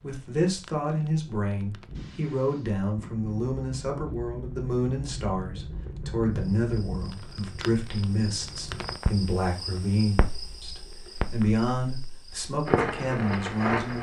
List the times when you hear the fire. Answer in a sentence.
The fire can be heard from 0.0 to 13.9 s.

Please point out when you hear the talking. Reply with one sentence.
The talking can be heard from 0.0 to 13.9 s.